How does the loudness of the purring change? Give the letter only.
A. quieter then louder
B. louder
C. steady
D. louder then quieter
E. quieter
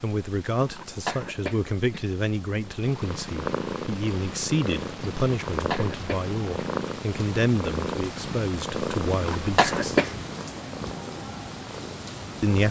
E.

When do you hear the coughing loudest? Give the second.
10 s.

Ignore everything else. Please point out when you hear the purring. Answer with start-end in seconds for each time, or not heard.
2.6-12.6.